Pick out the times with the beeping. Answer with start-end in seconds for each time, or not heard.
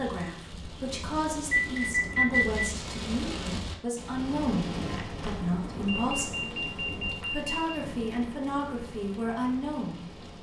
1.5-2.6, 5.8-7.5.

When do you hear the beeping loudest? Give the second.
2 s.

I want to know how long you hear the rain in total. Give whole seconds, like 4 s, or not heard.
10 s.